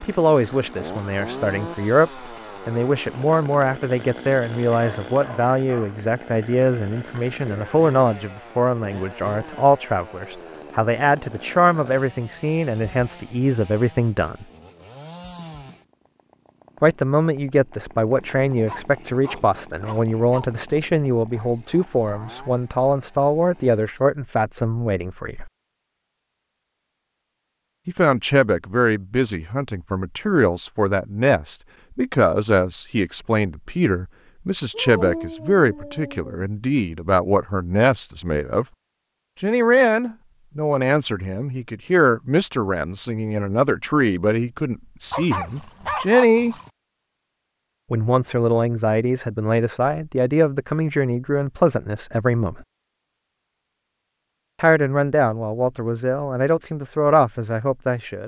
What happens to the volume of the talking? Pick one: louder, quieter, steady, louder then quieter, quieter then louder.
steady.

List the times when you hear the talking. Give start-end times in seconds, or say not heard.
0.0-14.4, 16.8-25.5, 27.9-38.6, 39.4-46.5, 47.9-52.6, 54.6-58.2.